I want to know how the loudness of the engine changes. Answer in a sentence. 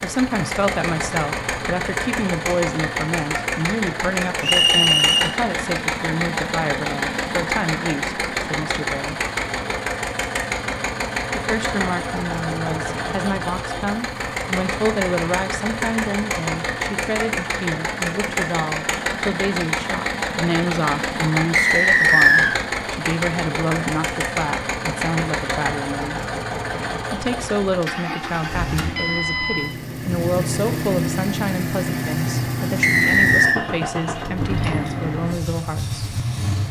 The volume of the engine stays about the same.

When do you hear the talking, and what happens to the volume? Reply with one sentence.
The talking can be heard from 0.0 to 9.2 s, at a steady volume; from 11.3 to 26.2 s, at a steady volume; and from 27.1 to 36.0 s, at a steady volume.